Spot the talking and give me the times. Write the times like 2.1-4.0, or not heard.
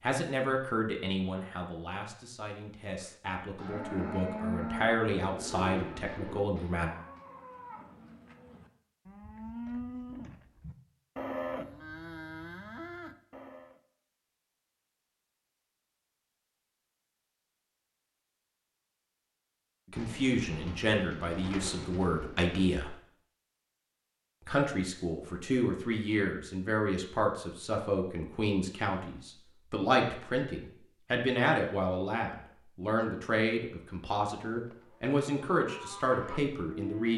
0.0-6.9, 19.9-22.9, 24.4-37.1.